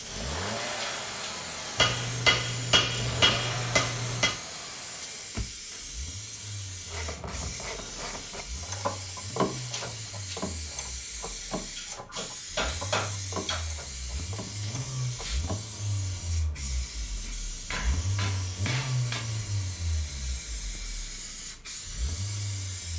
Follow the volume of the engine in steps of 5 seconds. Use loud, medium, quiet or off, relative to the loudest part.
loud, medium, medium, loud, medium.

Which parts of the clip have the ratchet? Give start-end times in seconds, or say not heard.
6.8-15.8.